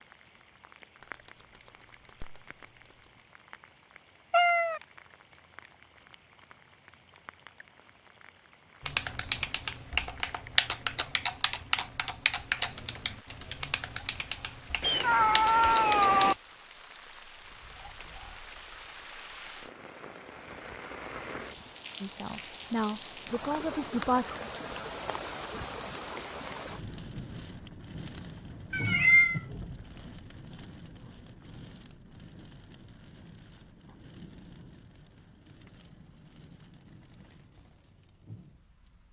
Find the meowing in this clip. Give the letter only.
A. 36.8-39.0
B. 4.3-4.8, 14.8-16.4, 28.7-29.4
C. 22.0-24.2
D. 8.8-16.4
B.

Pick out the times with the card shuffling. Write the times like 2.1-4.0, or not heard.
1.0-3.2.